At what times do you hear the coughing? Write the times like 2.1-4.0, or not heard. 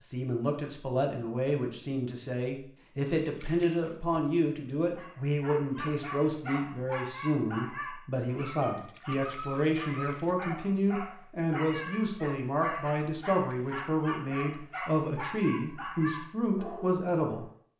not heard.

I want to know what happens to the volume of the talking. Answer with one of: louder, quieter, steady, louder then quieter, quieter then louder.
steady.